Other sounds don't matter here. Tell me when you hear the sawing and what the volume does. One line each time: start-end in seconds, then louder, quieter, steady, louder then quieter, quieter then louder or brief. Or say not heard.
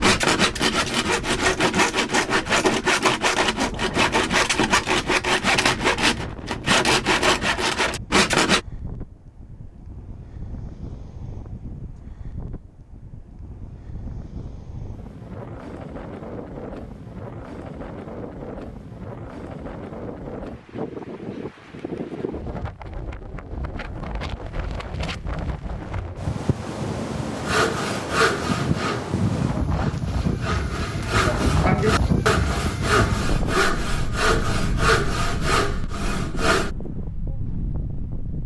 0.0-8.6 steady
27.4-36.7 quieter then louder.